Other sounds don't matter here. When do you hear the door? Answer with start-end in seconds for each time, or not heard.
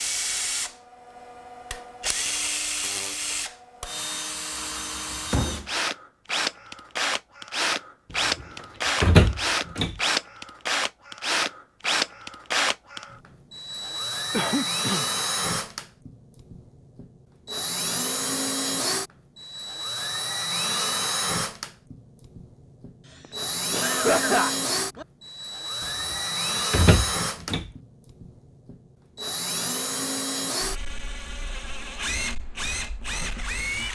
9.0-9.9, 26.1-27.7.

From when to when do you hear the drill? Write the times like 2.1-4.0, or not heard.
0.0-33.9.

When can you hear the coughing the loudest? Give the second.
24 s.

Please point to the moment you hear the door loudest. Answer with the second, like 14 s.
9 s.